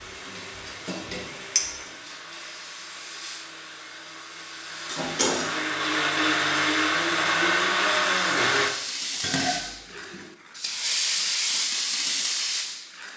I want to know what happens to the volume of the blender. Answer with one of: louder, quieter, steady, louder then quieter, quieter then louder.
louder.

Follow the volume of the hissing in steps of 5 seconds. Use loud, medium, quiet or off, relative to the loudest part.
quiet, medium, loud.